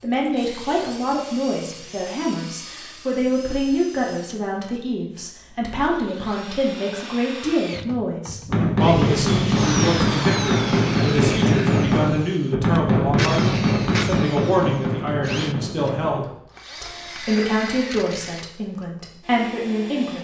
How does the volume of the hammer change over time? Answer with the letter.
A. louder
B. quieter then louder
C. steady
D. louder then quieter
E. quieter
E.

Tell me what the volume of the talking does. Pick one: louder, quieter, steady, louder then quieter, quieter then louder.
steady.